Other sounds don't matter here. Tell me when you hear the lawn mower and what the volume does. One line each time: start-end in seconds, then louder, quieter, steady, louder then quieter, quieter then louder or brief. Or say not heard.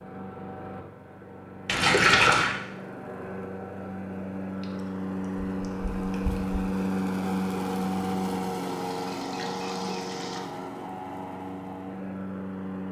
0.0-12.8 louder then quieter.